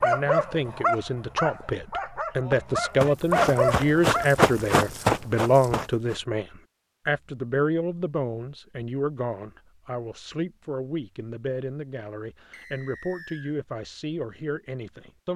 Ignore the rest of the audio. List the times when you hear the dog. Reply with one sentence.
The dog can be heard from 0.0 to 4.2 s.